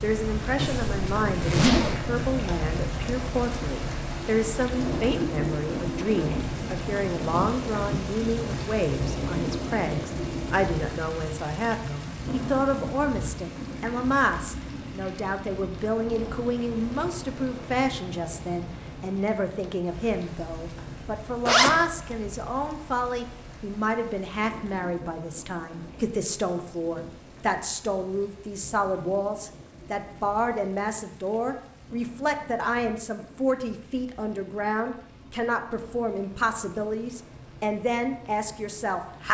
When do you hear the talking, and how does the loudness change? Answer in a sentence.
You can hear the talking from 0.0 to 39.2 s, at a steady volume.